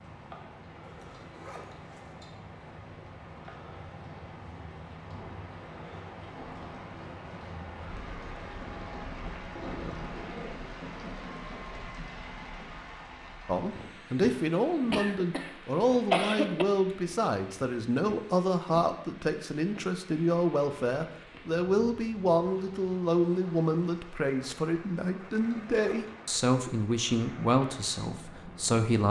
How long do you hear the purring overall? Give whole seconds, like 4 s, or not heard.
not heard.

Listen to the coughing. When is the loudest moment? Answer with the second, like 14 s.
16 s.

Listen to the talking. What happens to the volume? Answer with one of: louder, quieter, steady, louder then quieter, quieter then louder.
steady.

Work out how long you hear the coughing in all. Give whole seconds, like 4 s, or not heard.
2 s.